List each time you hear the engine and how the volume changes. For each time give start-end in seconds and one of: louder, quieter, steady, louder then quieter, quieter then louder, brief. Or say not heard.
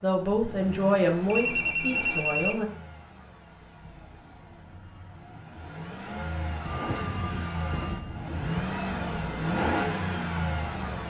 0.0-11.0 quieter then louder.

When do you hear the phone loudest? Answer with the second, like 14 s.
2 s.